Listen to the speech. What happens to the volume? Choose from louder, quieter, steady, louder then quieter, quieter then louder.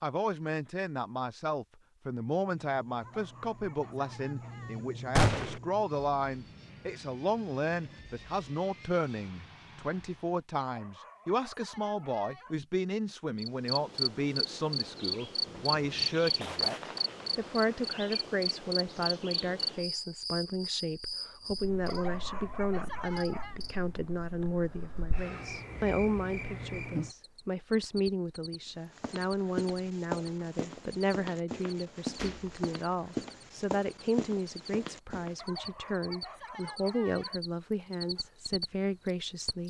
steady.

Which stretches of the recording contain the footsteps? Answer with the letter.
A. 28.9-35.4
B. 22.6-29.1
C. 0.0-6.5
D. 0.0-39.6
A.